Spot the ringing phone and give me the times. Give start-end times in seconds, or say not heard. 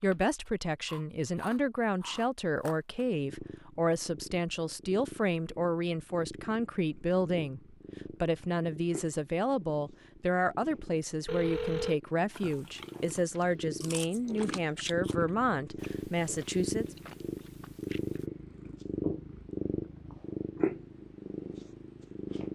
11.2-11.9.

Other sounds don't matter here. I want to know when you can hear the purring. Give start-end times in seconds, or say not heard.
3.1-22.5.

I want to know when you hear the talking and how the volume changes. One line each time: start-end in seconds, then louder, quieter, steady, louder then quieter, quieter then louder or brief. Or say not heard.
0.0-16.9 steady.